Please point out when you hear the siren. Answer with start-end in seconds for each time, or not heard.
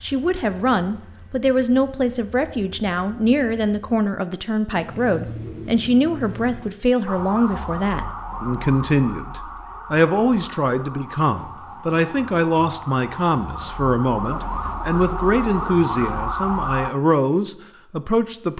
7.0-16.9.